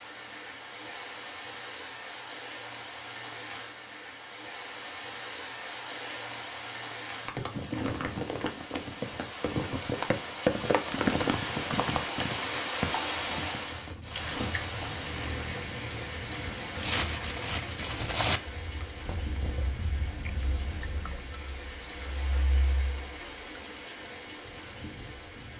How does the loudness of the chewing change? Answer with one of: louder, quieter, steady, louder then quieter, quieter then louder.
louder then quieter.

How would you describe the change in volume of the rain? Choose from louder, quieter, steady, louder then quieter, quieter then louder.
louder then quieter.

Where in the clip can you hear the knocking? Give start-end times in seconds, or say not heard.
19.1-19.7.